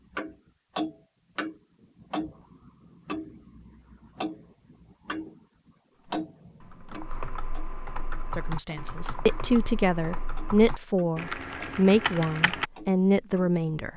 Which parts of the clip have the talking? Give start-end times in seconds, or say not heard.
8.3-13.9.